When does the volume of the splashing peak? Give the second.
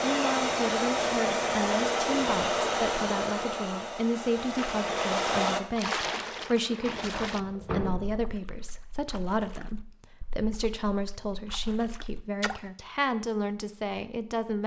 6 s.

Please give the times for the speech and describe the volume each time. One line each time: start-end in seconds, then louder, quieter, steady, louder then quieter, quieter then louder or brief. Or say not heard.
0.0-14.6 steady.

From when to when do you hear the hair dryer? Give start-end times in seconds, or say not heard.
0.0-5.6.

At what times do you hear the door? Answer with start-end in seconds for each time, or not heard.
6.8-8.2.